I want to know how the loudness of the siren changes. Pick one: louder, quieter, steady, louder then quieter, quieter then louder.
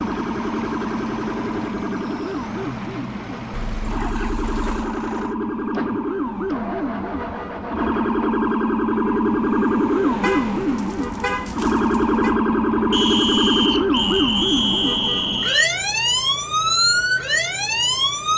louder.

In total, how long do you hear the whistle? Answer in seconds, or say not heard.
3 s.